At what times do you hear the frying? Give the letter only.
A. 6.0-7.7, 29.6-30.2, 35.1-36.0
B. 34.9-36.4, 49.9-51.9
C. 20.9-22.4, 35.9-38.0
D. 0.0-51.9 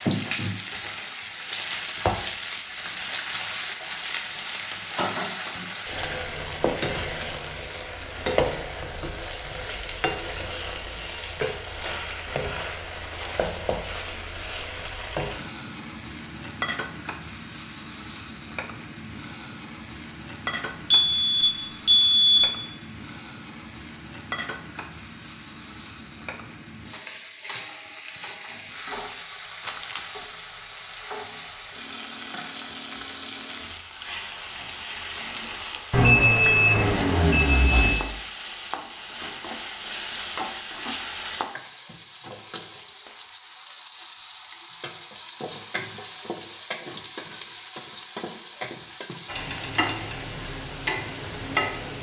D.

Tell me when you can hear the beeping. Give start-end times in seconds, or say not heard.
20.9-22.4, 35.9-38.0.